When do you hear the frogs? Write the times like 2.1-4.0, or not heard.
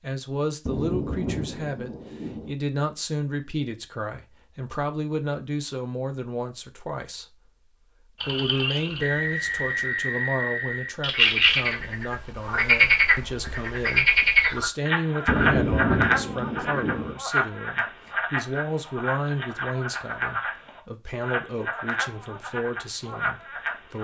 8.2-23.9.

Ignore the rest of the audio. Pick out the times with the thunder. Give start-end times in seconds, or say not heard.
0.7-2.5, 15.2-17.1.